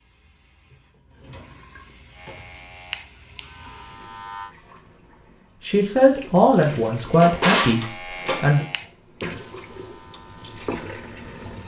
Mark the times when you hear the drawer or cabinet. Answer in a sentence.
You can hear the drawer or cabinet from 1.1 to 2.5 s and from 6.8 to 8.7 s.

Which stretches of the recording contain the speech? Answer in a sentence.
You can hear the speech from 5.7 to 8.7 s.